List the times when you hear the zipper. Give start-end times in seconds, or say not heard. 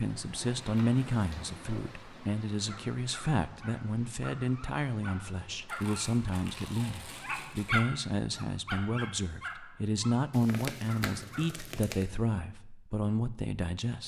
not heard.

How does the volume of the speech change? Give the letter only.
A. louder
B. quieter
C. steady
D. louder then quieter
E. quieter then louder
C.